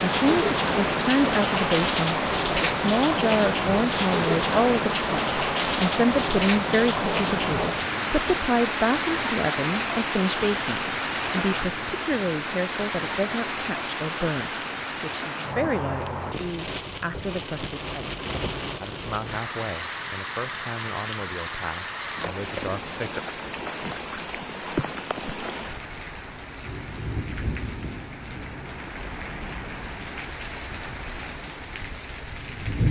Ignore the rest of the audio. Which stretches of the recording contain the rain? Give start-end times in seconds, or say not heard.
0.0-32.8.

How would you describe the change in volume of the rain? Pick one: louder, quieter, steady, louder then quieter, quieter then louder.
quieter.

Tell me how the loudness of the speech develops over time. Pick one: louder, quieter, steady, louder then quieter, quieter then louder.
quieter.